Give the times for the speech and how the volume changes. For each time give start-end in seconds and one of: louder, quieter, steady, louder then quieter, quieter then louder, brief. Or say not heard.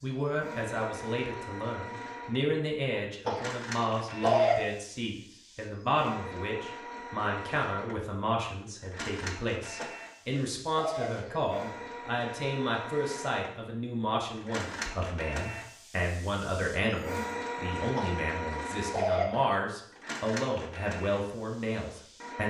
0.0-22.4 steady.